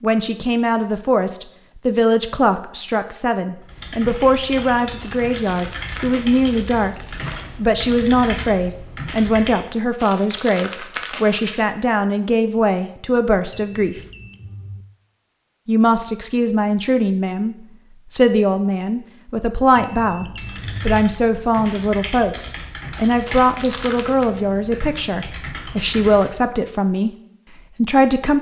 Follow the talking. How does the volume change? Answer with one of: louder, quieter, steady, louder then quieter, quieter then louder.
steady.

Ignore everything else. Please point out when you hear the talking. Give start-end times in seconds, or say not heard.
0.0-14.0, 15.7-28.3.